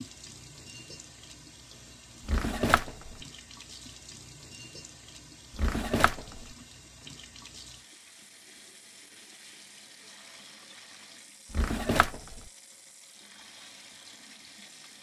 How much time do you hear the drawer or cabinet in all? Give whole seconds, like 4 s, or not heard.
3 s.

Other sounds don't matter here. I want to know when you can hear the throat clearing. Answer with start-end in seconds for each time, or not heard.
not heard.